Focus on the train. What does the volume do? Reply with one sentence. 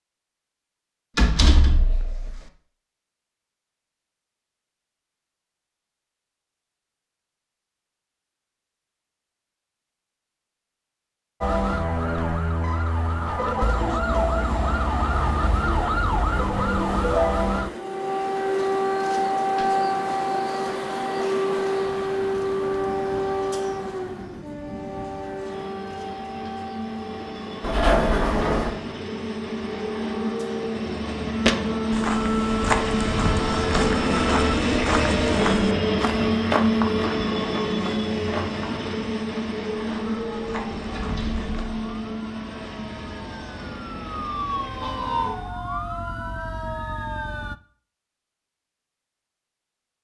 The volume of the train goes up, then down.